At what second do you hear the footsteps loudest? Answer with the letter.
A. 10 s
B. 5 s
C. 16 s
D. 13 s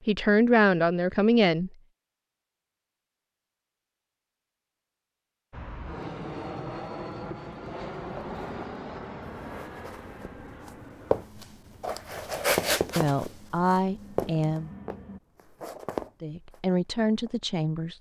D.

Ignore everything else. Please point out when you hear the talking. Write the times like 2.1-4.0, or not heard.
0.1-1.7, 12.9-14.7, 16.2-17.9.